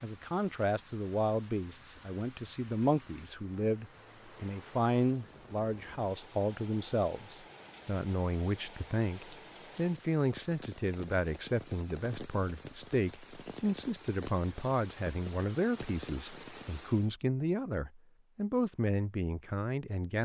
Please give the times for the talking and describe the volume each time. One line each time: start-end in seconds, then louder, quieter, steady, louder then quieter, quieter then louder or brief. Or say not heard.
0.0-20.2 steady.